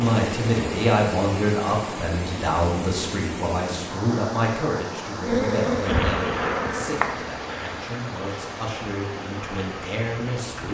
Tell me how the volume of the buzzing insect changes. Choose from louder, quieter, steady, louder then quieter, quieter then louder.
quieter.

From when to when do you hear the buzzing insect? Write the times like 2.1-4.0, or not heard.
5.2-10.7.